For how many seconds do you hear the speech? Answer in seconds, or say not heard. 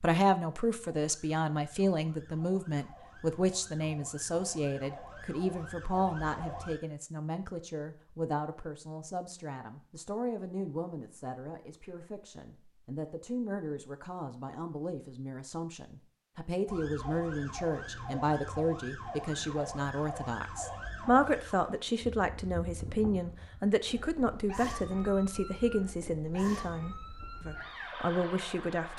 29 s.